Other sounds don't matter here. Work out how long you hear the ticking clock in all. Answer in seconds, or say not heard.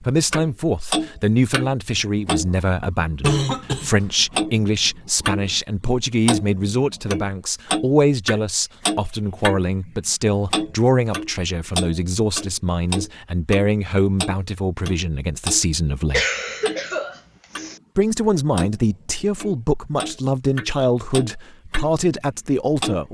21 s.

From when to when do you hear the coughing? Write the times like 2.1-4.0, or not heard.
3.2-4.0, 16.1-17.8.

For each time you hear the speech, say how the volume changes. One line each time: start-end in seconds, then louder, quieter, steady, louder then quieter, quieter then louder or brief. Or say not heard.
0.0-16.2 steady
17.9-23.0 steady.